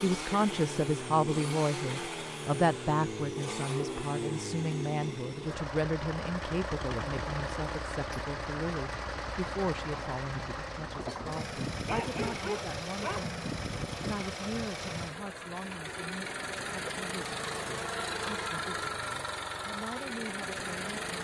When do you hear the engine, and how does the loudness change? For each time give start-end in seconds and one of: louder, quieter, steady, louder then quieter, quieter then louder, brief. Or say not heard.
0.0-21.2 steady.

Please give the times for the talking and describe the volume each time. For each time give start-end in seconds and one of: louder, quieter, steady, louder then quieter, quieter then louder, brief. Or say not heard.
0.0-21.2 quieter.